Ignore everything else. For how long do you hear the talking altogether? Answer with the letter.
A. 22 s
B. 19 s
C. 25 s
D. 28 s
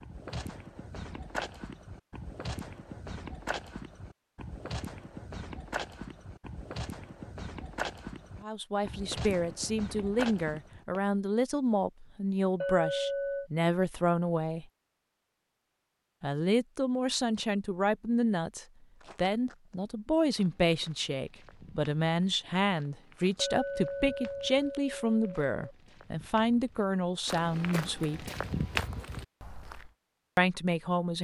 B.